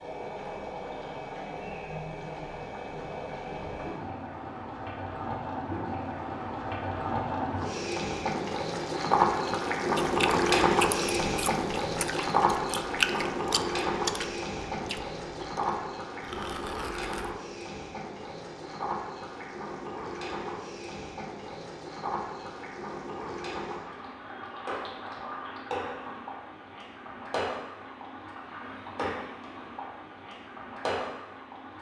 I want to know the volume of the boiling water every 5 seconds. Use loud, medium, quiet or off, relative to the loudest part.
medium, loud, loud, medium, medium, medium, medium.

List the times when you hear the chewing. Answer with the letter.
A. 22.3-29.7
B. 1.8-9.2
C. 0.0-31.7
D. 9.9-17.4
D.